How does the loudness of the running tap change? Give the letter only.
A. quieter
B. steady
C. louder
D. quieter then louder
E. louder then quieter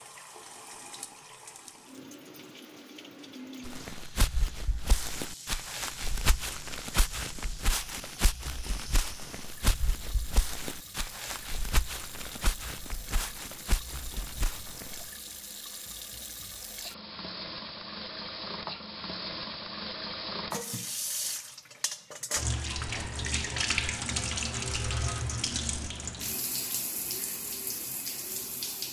C.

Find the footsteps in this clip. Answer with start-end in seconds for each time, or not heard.
3.6-15.1.